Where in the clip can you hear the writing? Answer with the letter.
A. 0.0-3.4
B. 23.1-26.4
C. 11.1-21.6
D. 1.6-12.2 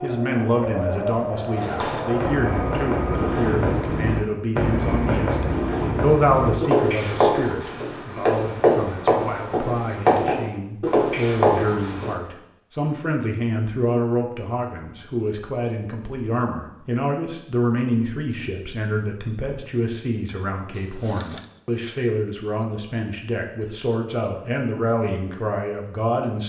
D.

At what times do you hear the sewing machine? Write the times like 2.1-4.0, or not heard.
0.0-3.4.